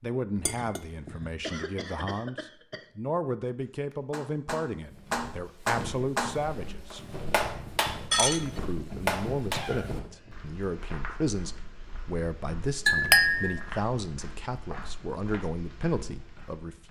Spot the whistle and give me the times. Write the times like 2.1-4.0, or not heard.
not heard.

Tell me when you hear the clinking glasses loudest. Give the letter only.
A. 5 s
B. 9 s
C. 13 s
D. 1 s
C.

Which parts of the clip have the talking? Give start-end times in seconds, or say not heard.
0.0-7.0, 8.2-16.8.